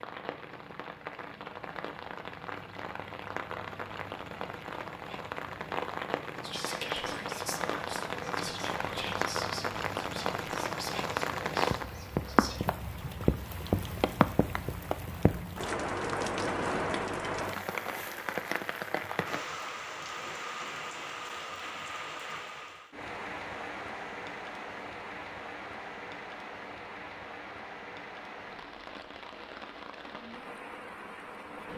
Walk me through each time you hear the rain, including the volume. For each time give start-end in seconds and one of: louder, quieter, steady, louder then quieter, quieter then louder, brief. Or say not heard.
0.0-31.7 louder then quieter.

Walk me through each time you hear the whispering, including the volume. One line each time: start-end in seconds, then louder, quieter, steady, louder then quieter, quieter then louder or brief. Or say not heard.
6.4-12.6 quieter.